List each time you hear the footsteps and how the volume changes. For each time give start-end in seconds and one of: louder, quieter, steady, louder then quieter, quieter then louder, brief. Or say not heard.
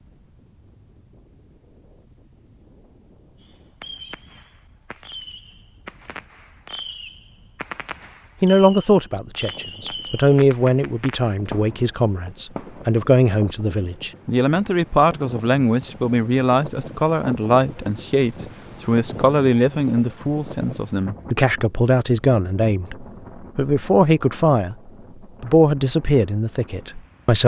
not heard.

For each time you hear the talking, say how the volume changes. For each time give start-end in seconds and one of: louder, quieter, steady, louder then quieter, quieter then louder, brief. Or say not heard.
8.4-27.4 steady.